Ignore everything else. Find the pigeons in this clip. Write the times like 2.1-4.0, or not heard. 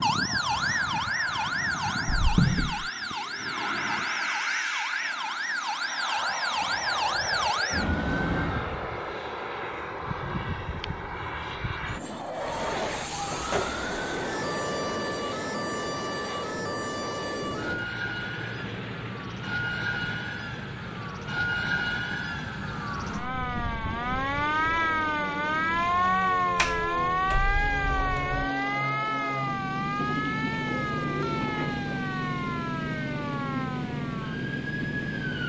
29.9-31.9.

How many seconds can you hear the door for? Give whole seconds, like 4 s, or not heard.
3 s.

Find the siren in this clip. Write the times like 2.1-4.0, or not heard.
0.0-8.7, 12.2-35.4.